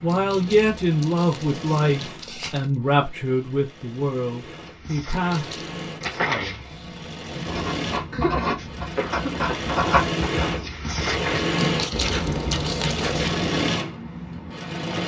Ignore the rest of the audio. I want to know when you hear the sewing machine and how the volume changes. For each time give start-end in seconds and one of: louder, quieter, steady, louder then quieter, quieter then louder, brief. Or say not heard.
0.0-15.0 louder.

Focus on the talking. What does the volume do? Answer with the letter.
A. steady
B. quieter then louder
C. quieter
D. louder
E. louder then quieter
C.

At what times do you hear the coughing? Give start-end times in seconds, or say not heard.
8.1-9.7.